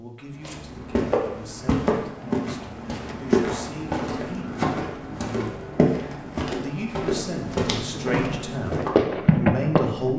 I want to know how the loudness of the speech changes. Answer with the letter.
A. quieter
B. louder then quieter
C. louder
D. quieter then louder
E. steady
C.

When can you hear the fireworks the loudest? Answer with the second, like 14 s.
9 s.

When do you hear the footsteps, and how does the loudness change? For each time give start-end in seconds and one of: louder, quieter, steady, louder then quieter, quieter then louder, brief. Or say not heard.
0.4-9.0 steady.